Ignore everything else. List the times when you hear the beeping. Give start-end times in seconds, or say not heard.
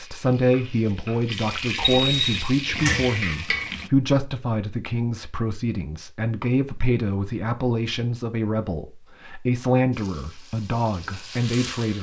1.9-3.0.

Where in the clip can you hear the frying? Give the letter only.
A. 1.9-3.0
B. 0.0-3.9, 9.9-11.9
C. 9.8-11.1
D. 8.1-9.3
B.